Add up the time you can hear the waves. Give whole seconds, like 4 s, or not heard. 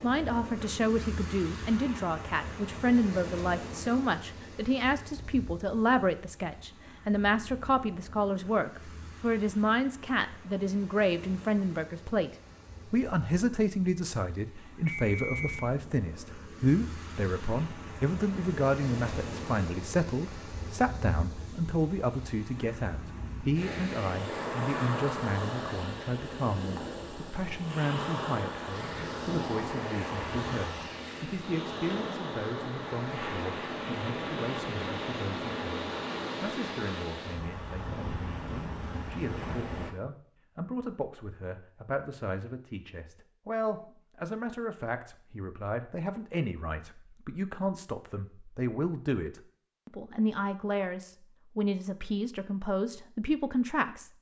40 s.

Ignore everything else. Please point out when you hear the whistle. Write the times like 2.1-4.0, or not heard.
14.9-15.7.